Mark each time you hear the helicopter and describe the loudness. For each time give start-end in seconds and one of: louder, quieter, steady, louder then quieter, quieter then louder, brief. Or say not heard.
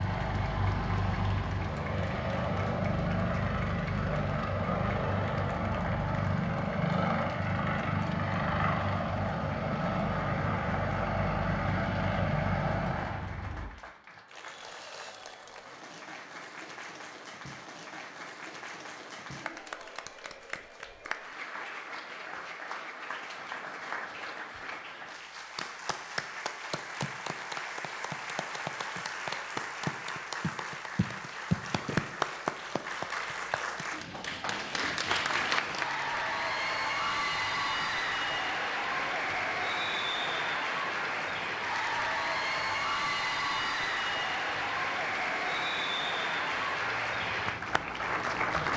0.0-13.7 steady
34.5-48.7 steady.